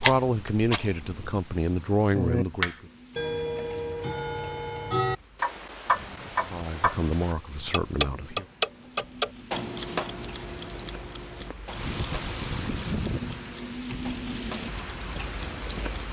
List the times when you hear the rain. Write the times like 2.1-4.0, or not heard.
0.1-16.0.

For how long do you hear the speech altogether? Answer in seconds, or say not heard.
5 s.